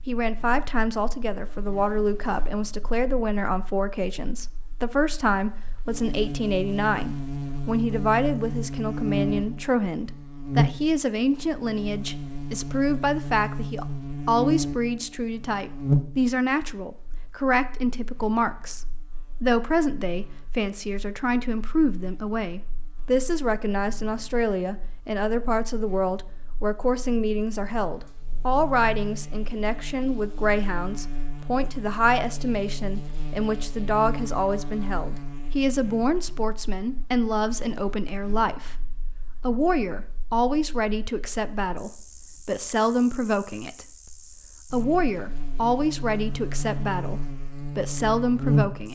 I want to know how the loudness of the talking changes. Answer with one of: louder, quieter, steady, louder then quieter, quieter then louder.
steady.